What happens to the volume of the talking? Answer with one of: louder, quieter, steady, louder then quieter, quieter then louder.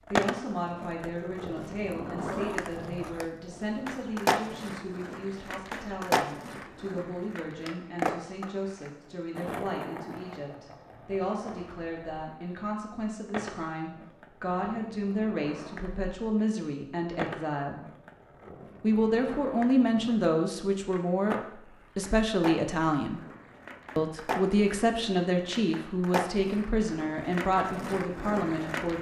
louder.